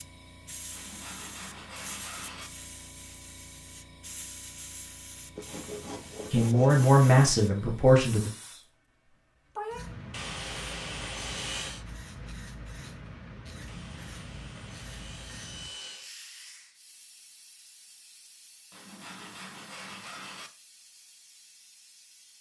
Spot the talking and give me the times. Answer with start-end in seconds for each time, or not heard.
6.3-8.3.